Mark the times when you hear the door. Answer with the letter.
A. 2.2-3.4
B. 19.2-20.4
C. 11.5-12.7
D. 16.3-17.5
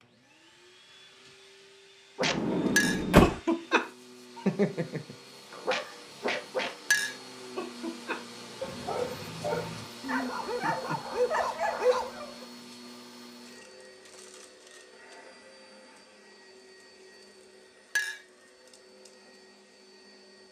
A.